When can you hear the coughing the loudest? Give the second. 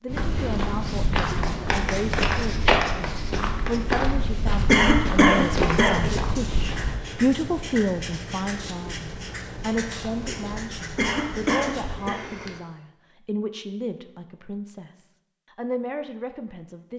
5 s.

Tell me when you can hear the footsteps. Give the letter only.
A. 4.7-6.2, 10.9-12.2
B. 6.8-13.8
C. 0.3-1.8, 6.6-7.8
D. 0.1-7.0
D.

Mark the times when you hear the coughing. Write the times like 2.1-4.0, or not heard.
4.7-6.2, 10.9-12.2.